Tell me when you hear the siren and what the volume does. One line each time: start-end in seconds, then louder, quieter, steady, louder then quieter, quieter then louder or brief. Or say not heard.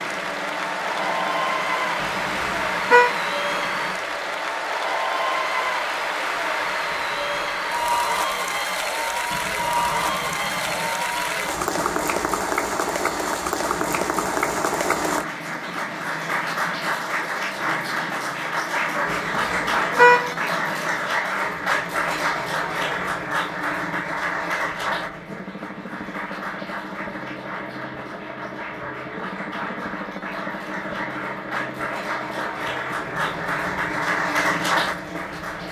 not heard.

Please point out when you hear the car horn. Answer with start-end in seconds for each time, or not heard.
2.0-3.1, 19.1-20.3.